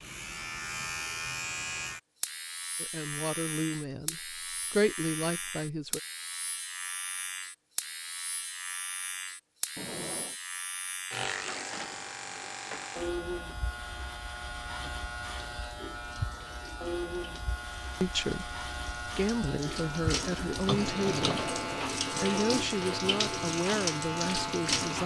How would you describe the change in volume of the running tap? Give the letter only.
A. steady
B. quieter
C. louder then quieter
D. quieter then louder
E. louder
E.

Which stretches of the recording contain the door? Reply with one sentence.
You can hear the door from 9.8 to 10.3 s and from 20.7 to 22.1 s.